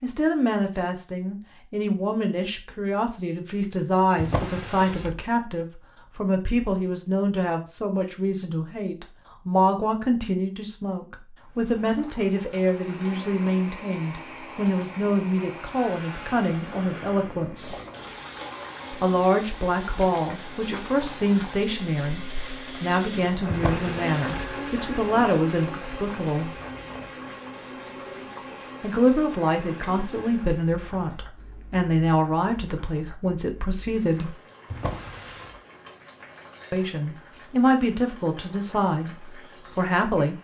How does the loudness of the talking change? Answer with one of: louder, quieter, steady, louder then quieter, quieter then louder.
steady.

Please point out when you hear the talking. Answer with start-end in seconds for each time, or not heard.
0.0-17.8, 18.9-26.5, 28.8-34.4, 36.7-40.3.